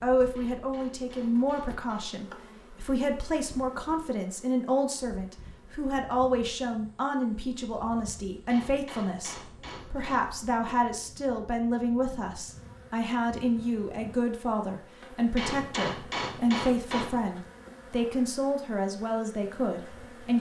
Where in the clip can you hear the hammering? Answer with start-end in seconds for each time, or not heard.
0.3-2.2, 8.4-10.3, 15.3-17.2.